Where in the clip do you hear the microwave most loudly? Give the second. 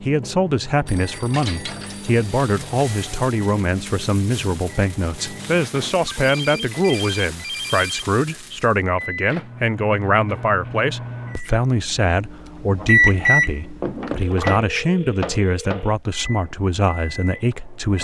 13 s.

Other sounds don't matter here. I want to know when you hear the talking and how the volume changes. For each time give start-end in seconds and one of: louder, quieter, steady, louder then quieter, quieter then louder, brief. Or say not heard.
0.0-17.9 steady.